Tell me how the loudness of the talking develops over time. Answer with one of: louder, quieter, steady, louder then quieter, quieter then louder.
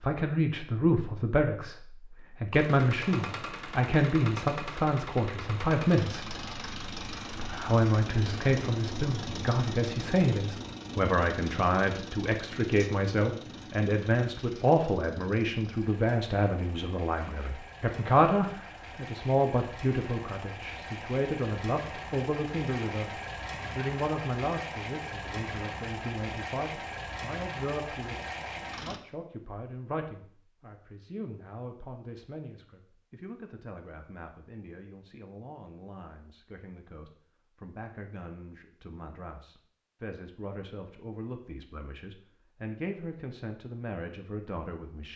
quieter.